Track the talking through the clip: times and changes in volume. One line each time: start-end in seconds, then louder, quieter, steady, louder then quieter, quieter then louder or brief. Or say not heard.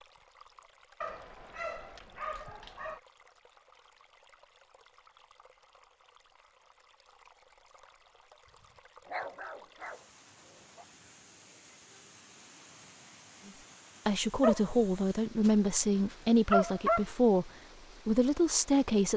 14.1-19.1 steady.